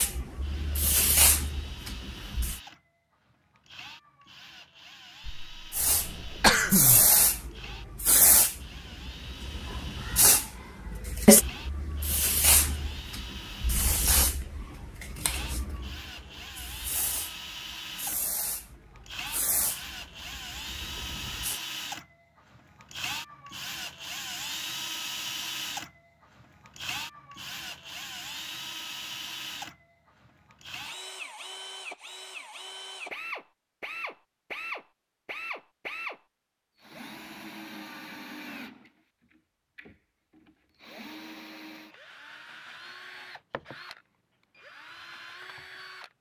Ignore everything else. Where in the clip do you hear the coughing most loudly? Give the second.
7 s.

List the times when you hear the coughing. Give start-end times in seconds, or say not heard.
5.2-7.0.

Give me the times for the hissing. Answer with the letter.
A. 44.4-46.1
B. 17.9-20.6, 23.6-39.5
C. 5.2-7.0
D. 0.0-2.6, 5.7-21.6
D.